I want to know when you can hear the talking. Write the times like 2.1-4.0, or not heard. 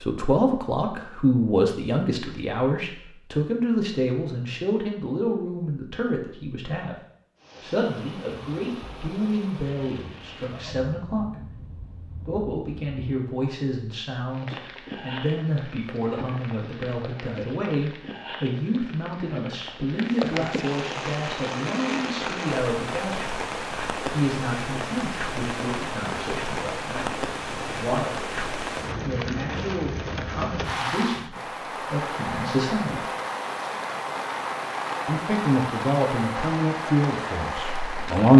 0.0-7.0, 7.6-23.2, 24.1-33.0, 35.0-38.3.